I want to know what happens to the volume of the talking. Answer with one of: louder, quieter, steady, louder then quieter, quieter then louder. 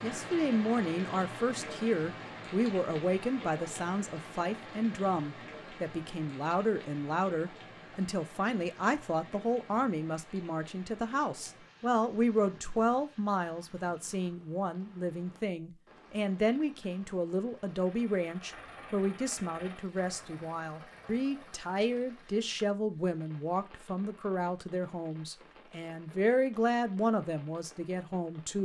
steady.